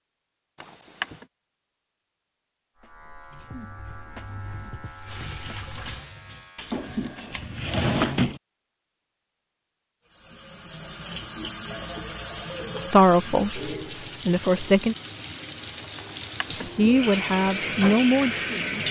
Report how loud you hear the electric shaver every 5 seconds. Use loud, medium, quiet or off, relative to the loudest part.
loud, loud, off, off.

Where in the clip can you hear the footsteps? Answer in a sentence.
The footsteps can't be heard in this clip.